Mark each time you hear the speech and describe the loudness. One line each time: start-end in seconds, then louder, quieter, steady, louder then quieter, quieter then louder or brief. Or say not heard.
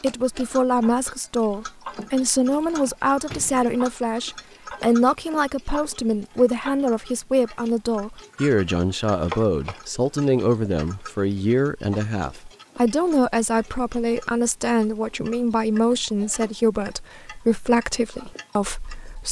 0.0-19.2 steady.